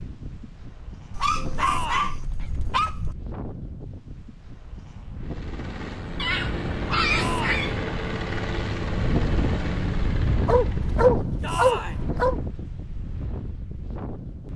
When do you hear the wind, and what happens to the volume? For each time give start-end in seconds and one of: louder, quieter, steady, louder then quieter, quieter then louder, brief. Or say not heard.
0.0-14.5 louder then quieter.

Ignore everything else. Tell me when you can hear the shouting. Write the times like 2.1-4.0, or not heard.
1.6-2.2, 7.1-7.6, 11.4-11.9.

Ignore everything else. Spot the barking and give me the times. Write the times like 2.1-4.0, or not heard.
1.1-3.1, 6.2-7.8, 10.4-12.4.